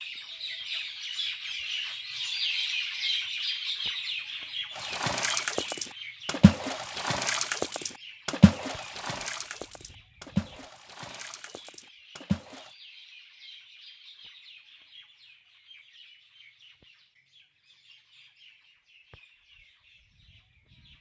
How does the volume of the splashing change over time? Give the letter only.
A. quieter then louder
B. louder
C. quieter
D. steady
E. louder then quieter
C.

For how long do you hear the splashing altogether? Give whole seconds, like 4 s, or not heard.
8 s.